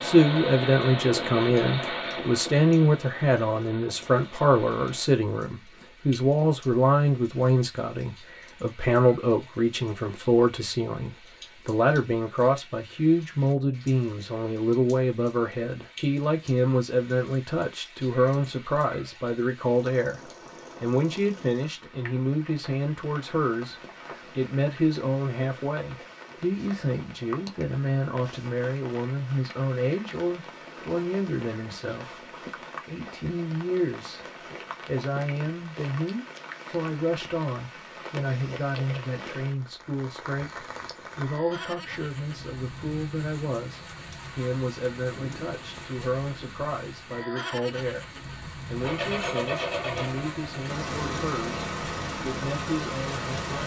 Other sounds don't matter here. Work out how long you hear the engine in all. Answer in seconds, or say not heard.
10 s.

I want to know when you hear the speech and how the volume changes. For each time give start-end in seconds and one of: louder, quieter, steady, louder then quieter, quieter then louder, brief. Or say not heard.
0.0-53.6 quieter.